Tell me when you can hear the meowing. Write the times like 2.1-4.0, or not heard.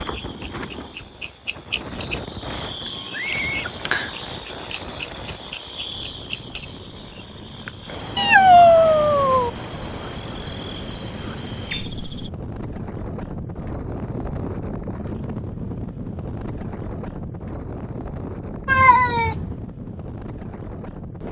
3.1-4.1, 8.2-9.5, 18.6-19.6.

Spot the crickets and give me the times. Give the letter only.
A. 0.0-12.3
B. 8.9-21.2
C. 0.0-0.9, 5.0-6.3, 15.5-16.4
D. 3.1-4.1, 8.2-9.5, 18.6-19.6
A.